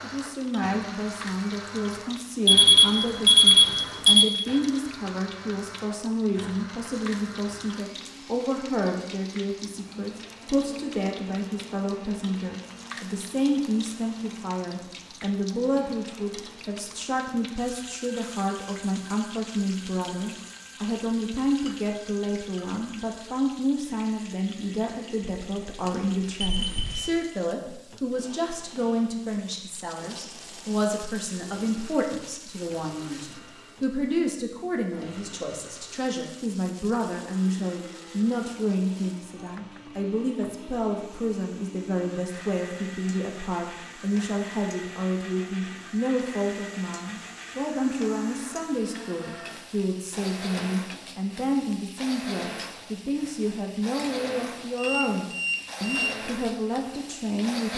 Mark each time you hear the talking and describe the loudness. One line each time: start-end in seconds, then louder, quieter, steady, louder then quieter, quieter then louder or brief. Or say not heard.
0.0-57.7 steady.